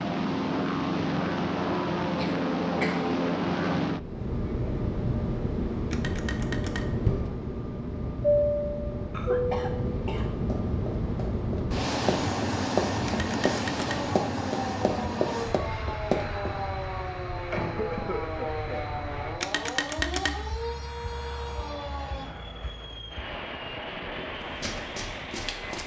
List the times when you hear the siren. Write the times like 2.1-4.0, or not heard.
13.8-22.2.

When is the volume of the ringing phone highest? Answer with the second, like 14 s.
20 s.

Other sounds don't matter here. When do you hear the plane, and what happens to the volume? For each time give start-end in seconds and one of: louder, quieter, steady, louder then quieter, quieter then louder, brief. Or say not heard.
0.0-25.8 quieter.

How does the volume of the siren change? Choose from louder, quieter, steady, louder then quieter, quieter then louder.
steady.